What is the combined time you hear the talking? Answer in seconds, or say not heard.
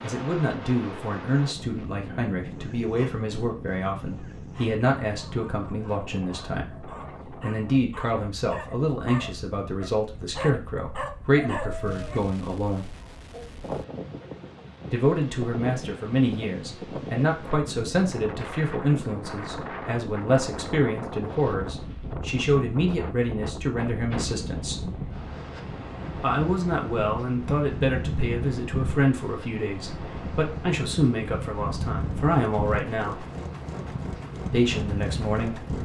31 s.